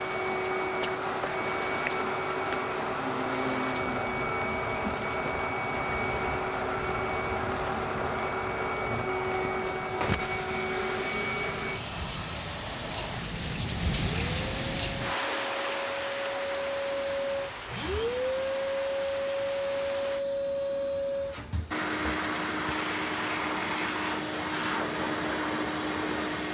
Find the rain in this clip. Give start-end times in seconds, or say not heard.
0.0-20.2.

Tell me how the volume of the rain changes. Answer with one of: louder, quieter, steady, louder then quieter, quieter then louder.
louder then quieter.